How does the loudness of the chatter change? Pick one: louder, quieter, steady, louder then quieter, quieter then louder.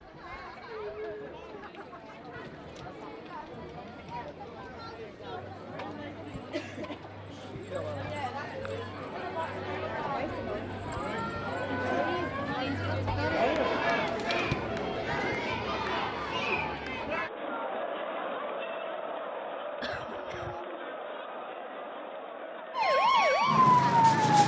louder then quieter.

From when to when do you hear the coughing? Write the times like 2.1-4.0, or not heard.
19.8-20.6.